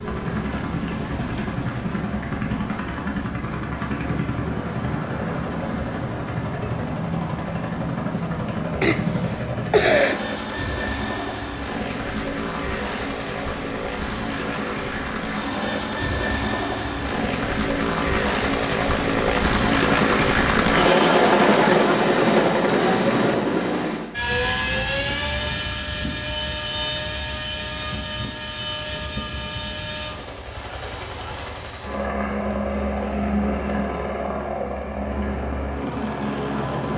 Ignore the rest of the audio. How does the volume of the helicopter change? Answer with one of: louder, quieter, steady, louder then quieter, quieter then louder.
louder then quieter.